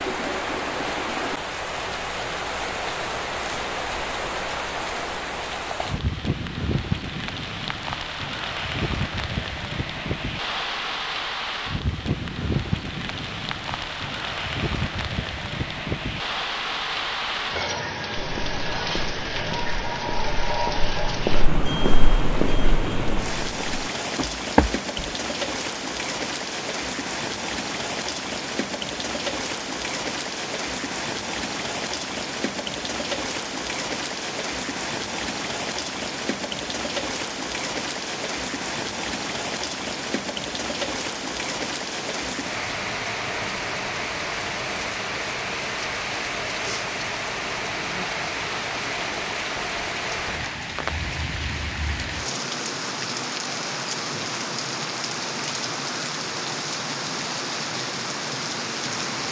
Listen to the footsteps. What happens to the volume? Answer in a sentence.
The volume of the footsteps goes up, then down.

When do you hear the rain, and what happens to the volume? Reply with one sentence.
You can hear the rain from 0.0 to 59.2 s, at a steady volume.